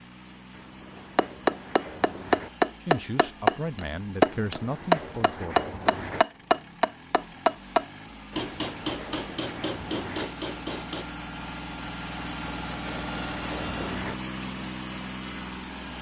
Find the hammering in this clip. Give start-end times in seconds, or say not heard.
1.1-11.1.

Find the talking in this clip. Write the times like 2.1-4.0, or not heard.
2.8-5.7.